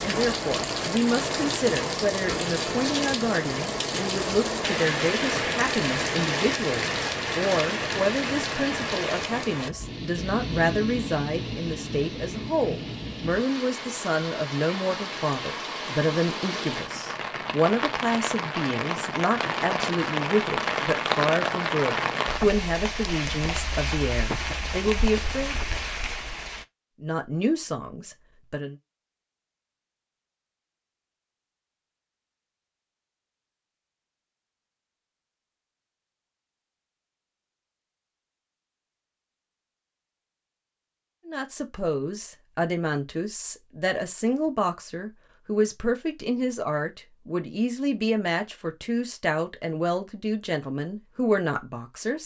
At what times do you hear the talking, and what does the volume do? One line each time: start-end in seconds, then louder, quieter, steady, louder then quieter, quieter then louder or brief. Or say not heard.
0.0-25.6 steady
27.0-28.8 brief
41.2-52.2 steady.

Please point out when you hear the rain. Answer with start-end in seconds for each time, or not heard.
0.0-26.6.